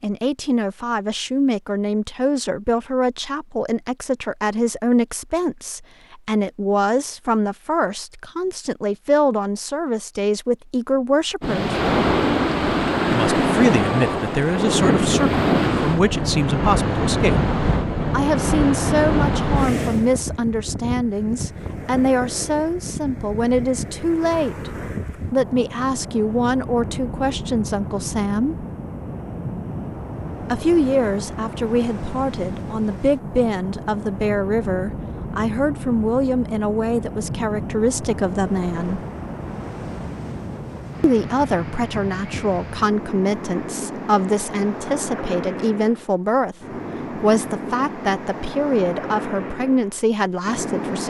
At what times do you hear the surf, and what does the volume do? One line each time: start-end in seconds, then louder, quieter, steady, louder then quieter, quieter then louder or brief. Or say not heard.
11.4-51.0 quieter.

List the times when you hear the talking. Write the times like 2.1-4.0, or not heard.
0.0-11.8, 13.1-17.4, 18.1-28.6, 30.5-39.0, 41.0-51.0.